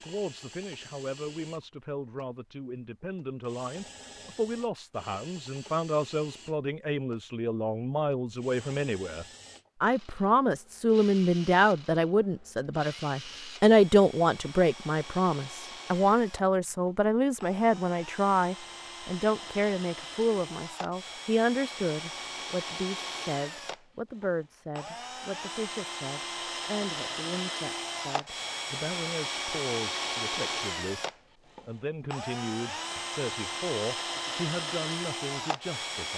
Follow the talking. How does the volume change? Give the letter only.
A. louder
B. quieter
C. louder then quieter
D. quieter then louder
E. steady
C.